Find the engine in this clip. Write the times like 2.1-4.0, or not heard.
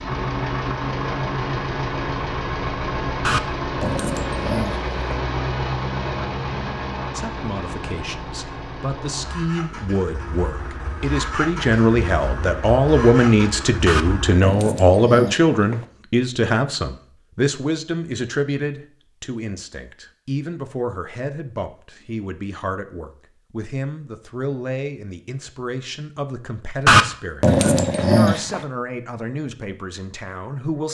0.0-14.4.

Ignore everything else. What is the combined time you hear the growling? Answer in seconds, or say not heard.
6 s.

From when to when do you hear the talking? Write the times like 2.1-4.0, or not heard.
7.2-30.8.